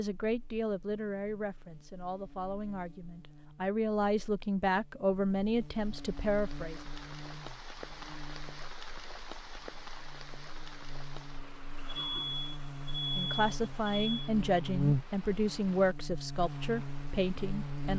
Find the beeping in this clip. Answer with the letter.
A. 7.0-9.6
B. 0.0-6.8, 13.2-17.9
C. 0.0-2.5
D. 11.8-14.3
D.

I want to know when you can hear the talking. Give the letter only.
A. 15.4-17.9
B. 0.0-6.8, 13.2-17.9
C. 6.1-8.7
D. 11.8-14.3
B.